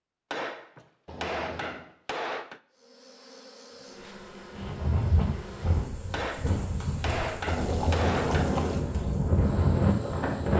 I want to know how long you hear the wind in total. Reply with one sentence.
The wind can be heard for 6 seconds in total.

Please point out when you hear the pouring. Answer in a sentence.
The pouring can be heard from 1.1 to 1.9 s and from 7.5 to 8.8 s.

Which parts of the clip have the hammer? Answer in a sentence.
The hammer can be heard from 0.3 to 2.6 s and from 6.1 to 8.6 s.